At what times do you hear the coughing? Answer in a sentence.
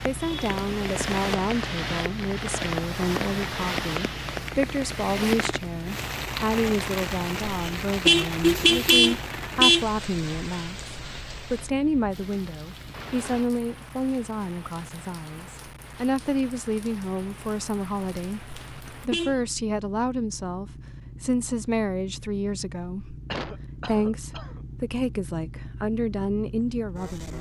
You can hear the coughing from 23.3 to 24.6 s.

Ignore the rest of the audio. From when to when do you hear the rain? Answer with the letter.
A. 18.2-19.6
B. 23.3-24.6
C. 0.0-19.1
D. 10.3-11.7
C.